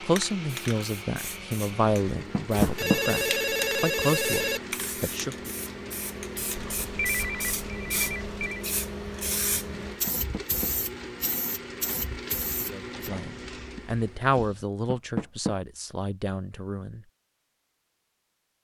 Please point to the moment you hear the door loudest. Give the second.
3 s.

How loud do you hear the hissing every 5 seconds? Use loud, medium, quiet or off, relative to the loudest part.
loud, loud, loud, off.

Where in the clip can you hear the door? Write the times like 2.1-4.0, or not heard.
2.3-3.0, 10.1-10.7, 14.9-15.6.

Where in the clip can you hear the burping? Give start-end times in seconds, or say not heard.
not heard.